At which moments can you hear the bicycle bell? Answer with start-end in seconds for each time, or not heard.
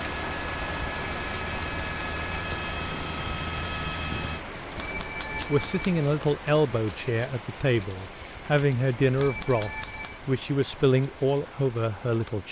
0.9-2.2, 4.8-6.2, 9.2-10.2.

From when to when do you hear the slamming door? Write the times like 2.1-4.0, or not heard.
2.3-2.8.